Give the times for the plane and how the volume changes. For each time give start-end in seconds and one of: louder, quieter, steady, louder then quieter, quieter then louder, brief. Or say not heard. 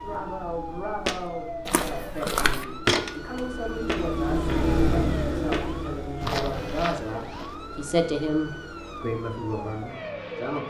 0.0-10.6 louder then quieter.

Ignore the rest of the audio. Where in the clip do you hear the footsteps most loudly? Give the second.
3 s.